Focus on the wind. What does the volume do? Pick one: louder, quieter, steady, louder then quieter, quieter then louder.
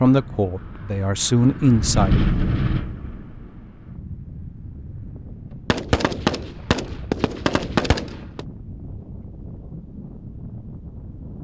quieter.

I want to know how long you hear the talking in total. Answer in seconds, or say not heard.
2 s.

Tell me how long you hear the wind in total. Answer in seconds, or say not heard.
11 s.